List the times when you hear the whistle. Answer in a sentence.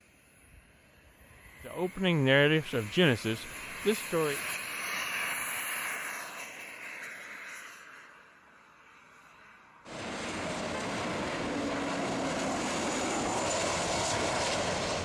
The whistle can't be heard in this clip.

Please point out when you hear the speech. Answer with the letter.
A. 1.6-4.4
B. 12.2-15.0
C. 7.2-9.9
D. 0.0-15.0
A.